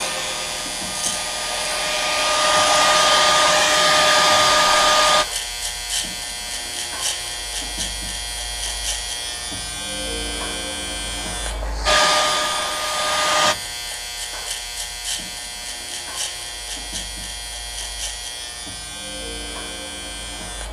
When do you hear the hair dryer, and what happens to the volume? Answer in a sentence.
The hair dryer can be heard from 0.0 to 5.2 s, getting louder; and briefly from 11.8 to 13.6 s.